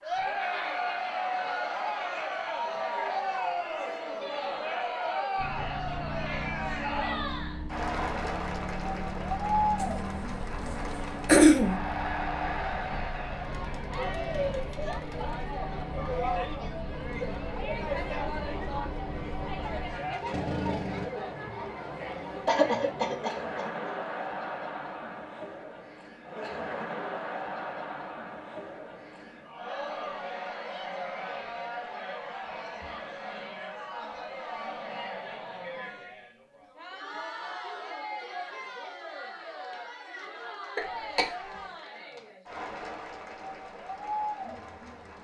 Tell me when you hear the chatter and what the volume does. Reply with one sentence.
You can hear the chatter from 0.0 to 45.1 s, getting quieter.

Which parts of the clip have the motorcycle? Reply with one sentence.
The motorcycle can be heard from 5.3 to 21.1 s.